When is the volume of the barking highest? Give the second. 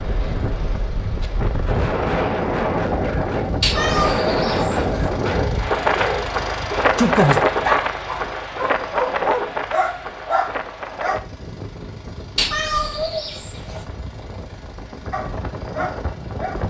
7 s.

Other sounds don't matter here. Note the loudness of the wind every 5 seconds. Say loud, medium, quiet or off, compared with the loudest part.
loud, loud, quiet, medium.